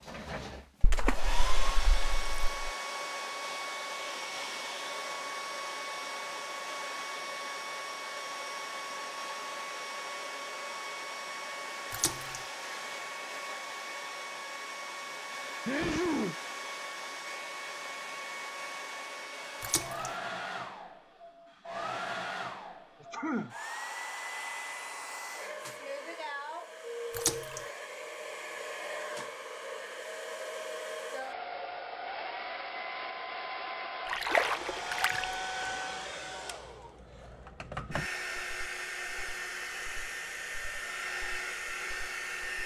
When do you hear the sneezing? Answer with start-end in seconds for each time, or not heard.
15.7-16.4, 23.0-23.6.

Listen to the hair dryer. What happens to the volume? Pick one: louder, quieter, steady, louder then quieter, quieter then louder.
steady.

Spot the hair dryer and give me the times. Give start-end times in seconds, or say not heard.
0.0-42.6.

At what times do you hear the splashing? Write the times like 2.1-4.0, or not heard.
0.8-2.7, 11.9-12.4, 19.6-20.1, 27.1-27.6, 34.0-35.2.